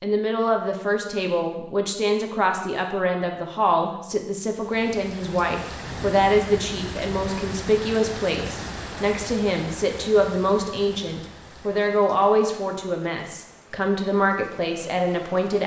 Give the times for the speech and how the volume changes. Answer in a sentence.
The speech can be heard from 0.0 to 15.6 s, at a steady volume.